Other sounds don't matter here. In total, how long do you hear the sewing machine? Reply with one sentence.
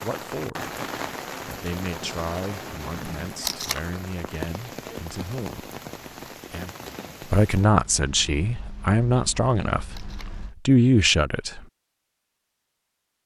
You can't hear the sewing machine here.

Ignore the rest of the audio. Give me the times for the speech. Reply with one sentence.
You can hear the speech from 0.0 to 5.7 s and from 6.5 to 11.7 s.